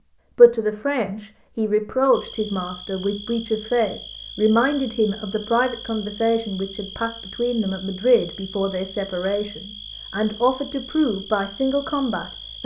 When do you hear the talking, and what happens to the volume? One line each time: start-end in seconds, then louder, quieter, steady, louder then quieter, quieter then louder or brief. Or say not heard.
0.3-12.6 steady.